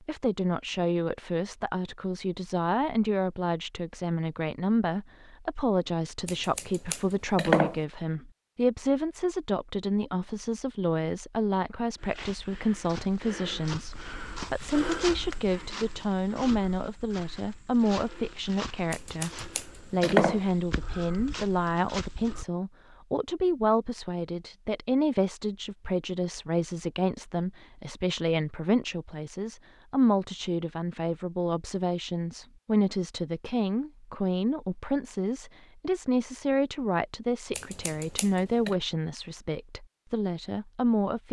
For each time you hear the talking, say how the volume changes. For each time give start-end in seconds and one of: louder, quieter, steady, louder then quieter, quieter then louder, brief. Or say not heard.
0.1-41.2 steady.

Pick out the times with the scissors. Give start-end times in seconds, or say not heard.
6.2-7.8, 18.9-20.4, 37.5-38.8.